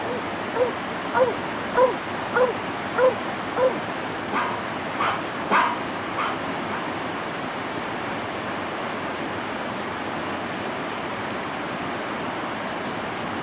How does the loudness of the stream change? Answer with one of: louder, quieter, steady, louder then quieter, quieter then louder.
steady.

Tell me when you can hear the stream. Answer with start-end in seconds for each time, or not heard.
0.0-13.3.